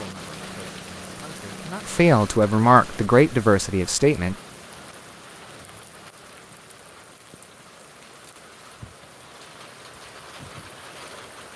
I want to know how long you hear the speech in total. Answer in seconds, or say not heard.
4 s.